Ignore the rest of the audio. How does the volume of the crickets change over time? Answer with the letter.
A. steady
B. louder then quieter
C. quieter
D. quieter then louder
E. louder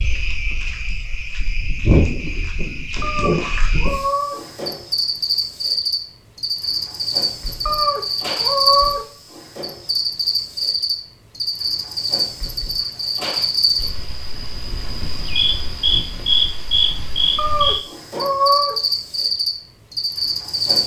A.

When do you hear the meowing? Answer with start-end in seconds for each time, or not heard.
3.0-4.4, 7.7-9.1, 17.4-18.8.